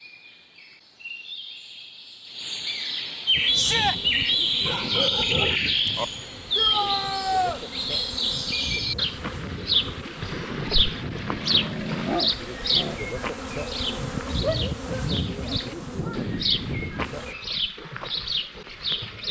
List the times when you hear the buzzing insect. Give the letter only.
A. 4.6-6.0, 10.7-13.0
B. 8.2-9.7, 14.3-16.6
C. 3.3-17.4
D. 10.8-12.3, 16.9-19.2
C.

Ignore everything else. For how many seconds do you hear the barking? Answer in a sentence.
The barking can be heard for 4 seconds in total.